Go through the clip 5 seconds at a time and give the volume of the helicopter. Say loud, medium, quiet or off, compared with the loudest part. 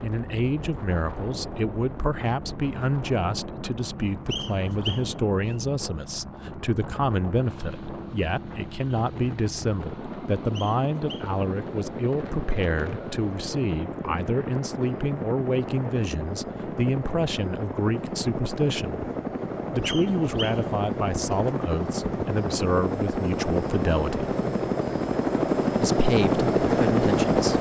quiet, quiet, quiet, medium, medium, loud.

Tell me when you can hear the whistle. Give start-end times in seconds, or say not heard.
4.3-5.5, 10.5-11.3, 19.8-20.6.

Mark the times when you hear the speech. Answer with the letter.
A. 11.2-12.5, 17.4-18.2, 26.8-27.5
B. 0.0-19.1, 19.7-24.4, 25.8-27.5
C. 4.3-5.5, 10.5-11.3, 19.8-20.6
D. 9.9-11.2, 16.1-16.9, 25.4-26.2
B.